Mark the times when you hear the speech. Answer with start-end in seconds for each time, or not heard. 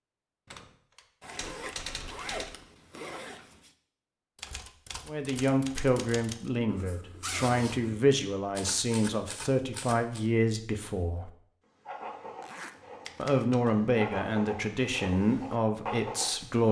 5.0-11.3, 13.2-16.6.